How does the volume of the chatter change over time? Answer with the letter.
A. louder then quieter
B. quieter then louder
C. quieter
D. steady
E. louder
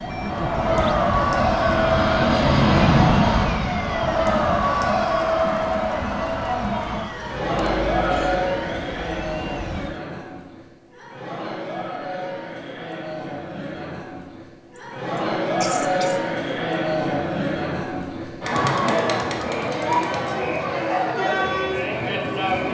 B.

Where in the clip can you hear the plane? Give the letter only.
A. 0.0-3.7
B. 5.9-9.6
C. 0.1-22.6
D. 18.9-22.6
A.